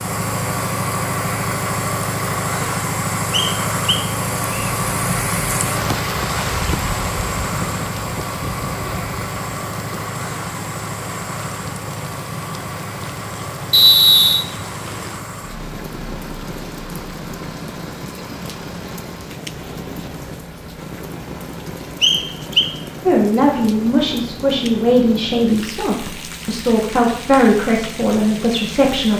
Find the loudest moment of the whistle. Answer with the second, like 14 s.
14 s.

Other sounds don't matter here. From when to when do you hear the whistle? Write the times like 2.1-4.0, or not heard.
3.3-4.7, 13.7-14.4, 22.0-22.7.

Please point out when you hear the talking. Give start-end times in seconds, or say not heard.
23.1-29.1.